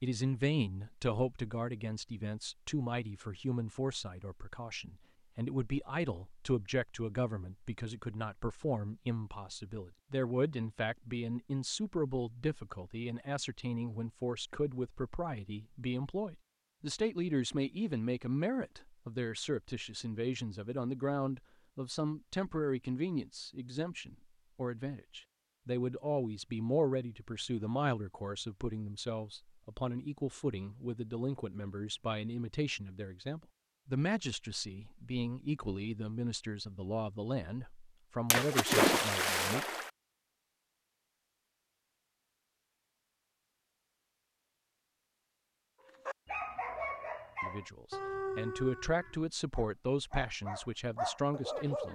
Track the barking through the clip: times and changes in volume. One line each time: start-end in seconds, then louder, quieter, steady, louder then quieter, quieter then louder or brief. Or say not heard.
45.9-51.8 quieter then louder.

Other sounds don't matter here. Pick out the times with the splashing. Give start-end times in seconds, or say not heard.
38.3-39.9.